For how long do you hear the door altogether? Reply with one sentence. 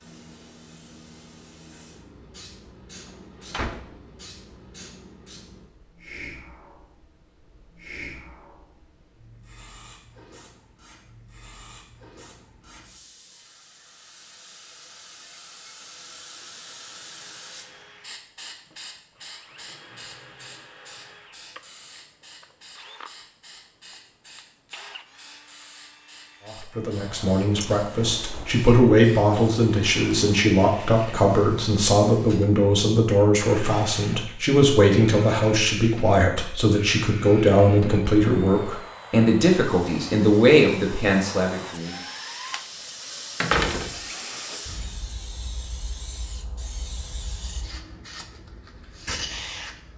The door can be heard for 3 seconds in total.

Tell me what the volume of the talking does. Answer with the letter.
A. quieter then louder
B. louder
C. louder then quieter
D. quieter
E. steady
E.